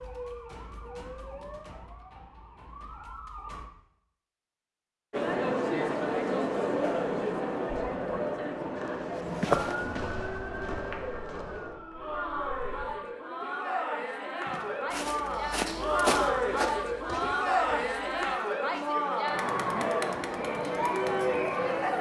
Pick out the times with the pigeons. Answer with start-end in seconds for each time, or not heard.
not heard.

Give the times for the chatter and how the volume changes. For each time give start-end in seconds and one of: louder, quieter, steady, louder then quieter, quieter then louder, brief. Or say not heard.
5.1-21.9 quieter then louder.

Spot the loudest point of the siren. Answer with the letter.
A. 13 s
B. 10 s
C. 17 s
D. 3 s
B.